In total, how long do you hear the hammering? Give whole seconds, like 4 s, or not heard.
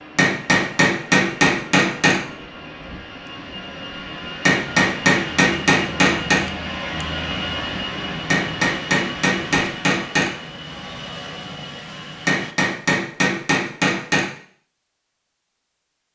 8 s.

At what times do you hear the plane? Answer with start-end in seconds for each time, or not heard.
0.0-12.6.